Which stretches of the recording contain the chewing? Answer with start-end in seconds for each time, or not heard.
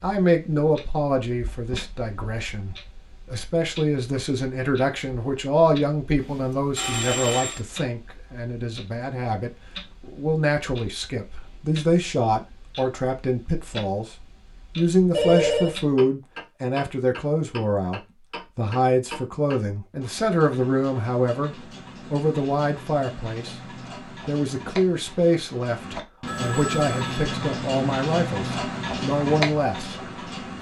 not heard.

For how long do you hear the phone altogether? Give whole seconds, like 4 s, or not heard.
3 s.